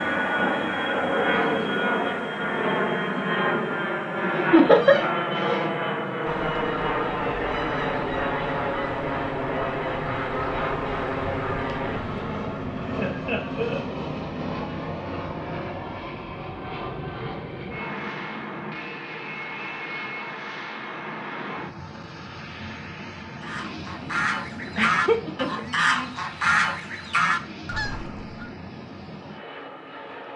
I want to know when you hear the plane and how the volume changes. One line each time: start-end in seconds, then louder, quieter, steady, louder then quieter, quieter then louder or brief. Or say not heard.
0.0-30.3 quieter.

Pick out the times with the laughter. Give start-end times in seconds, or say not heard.
4.5-5.0, 12.9-13.9, 24.8-25.7.